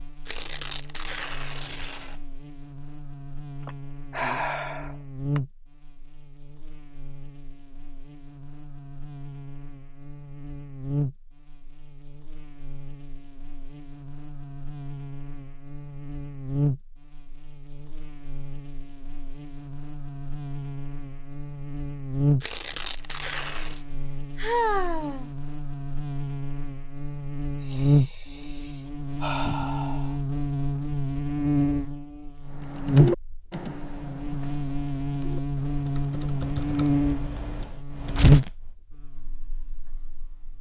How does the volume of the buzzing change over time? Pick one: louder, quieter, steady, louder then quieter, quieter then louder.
louder.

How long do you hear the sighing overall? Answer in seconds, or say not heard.
6 s.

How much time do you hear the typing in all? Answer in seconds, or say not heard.
6 s.